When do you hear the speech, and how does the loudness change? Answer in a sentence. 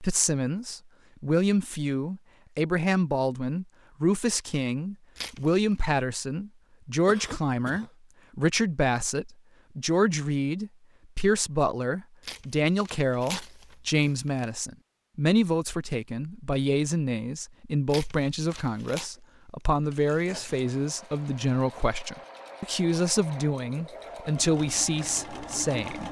The speech can be heard from 0.0 to 26.0 s, at a steady volume.